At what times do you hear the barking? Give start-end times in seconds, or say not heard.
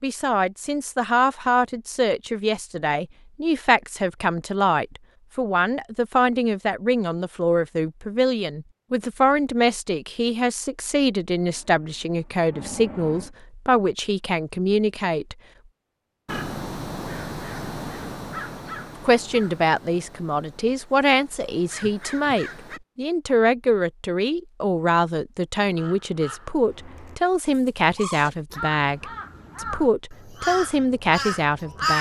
not heard.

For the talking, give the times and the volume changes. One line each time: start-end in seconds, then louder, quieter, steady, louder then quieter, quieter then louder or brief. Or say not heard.
0.0-15.3 steady
19.0-31.9 steady.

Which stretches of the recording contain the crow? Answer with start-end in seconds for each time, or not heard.
16.2-22.8, 25.6-31.9.